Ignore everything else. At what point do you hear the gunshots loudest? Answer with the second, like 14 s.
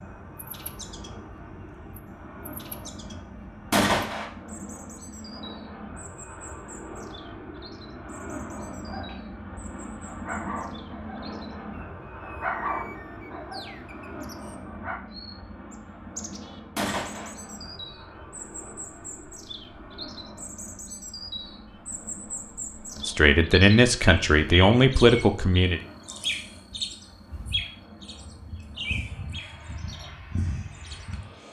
4 s.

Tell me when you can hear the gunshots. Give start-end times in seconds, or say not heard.
3.7-4.3, 16.8-17.3.